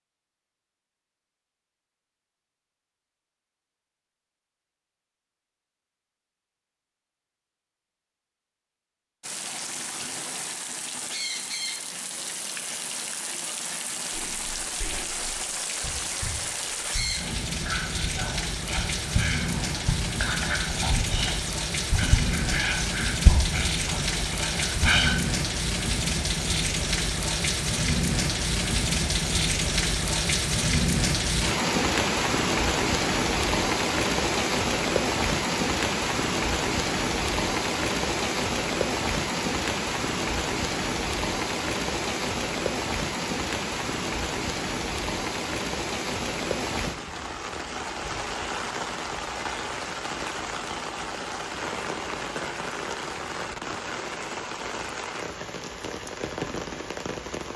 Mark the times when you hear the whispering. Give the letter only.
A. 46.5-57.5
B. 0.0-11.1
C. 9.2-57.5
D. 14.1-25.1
D.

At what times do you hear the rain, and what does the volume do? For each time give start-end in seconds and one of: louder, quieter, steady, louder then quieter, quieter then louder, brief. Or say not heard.
9.2-57.5 louder then quieter.